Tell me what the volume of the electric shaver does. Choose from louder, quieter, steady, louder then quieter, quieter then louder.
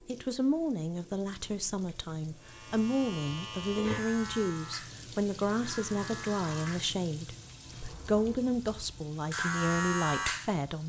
quieter then louder.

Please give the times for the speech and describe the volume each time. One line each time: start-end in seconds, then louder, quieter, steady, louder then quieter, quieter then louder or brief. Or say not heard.
0.1-10.8 steady.